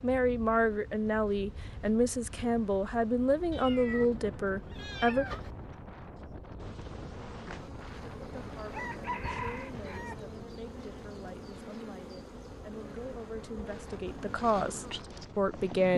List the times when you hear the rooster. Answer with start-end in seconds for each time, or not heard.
8.7-10.2.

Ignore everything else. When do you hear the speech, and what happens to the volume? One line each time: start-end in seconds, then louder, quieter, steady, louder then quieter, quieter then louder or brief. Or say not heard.
0.0-5.2 steady
8.3-15.9 louder.